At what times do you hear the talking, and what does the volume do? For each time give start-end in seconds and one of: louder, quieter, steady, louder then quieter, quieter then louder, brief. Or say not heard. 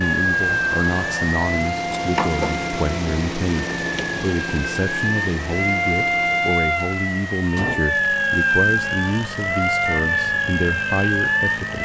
0.0-11.8 steady.